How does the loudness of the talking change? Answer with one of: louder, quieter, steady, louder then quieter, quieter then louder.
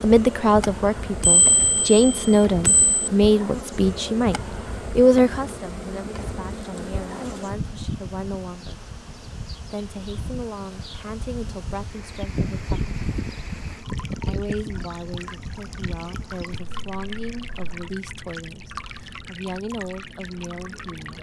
quieter.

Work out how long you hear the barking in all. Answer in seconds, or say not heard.
not heard.